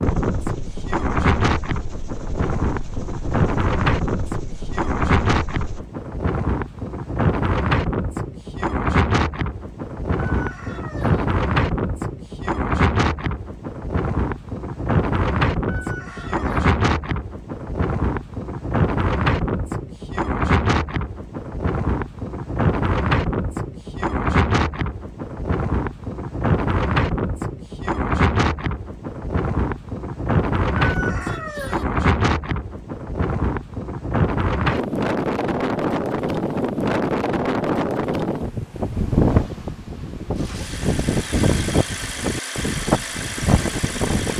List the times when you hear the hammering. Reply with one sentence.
You can't hear the hammering here.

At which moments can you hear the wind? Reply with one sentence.
You can hear the wind from 0.0 to 44.3 s.